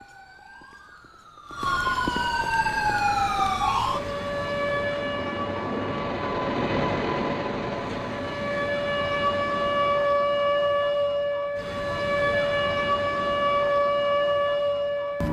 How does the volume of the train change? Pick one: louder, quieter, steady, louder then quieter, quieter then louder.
louder then quieter.